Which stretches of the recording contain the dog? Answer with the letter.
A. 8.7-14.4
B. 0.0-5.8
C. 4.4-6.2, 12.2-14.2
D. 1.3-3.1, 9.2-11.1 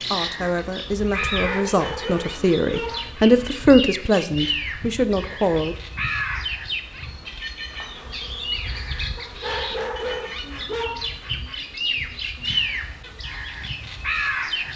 D.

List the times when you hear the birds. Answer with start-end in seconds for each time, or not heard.
0.0-14.7.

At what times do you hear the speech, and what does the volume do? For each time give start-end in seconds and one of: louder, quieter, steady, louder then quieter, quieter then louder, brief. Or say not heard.
0.0-5.8 louder then quieter.